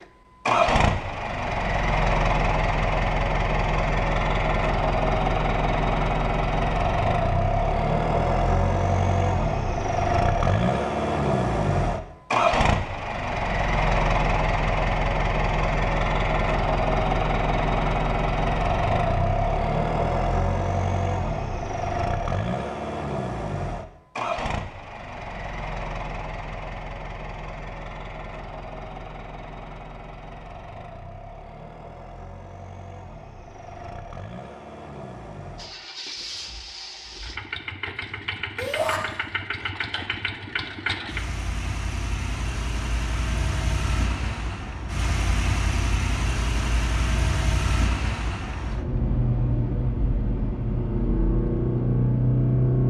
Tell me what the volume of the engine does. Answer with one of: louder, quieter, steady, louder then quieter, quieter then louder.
quieter then louder.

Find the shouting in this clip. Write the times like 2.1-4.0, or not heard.
38.5-39.0.